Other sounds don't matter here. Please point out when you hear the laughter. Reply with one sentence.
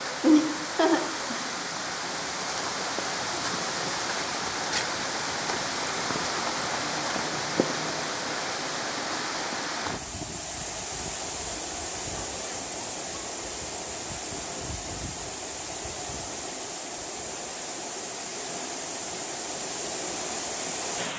You can hear the laughter from 0.2 to 1.4 s.